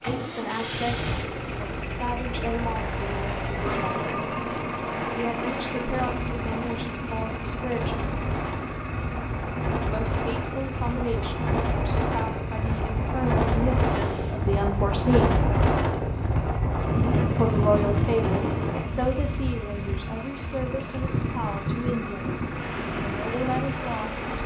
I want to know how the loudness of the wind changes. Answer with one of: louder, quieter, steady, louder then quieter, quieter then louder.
louder then quieter.